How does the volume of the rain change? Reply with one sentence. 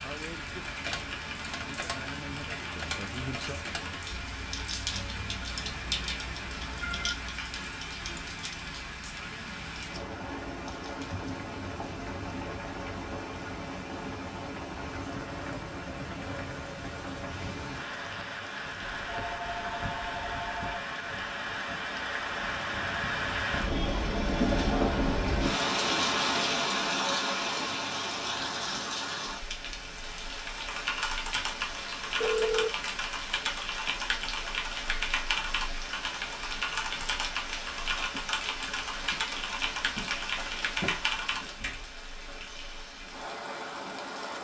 The loudness of the rain goes up, then down.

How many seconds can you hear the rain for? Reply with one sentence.
You can hear the rain for 44 seconds altogether.